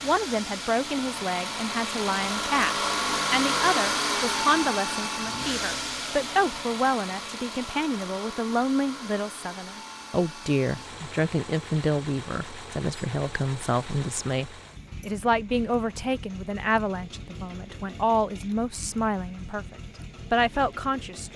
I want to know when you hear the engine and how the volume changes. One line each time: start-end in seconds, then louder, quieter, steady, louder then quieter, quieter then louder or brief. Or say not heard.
0.0-21.3 quieter.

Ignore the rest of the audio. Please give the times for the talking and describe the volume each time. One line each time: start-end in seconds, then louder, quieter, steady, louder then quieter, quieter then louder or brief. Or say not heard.
0.0-21.3 steady.